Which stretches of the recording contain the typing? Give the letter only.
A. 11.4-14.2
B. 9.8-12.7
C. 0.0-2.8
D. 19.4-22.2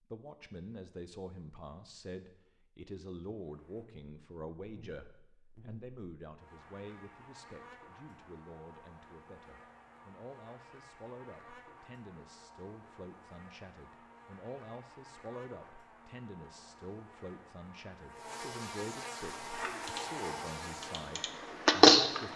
D.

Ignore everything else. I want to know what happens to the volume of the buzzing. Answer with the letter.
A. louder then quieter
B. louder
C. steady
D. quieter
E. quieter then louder
B.